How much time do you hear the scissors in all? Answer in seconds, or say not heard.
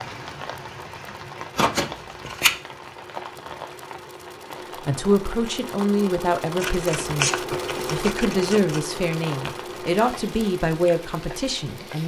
3 s.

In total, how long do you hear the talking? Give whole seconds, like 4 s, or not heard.
7 s.